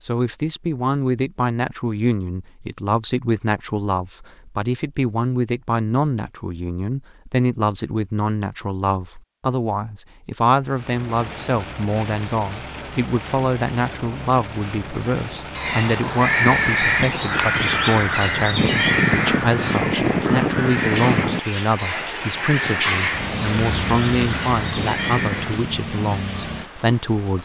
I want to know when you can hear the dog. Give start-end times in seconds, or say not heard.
not heard.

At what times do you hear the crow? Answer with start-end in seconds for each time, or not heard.
15.6-25.7.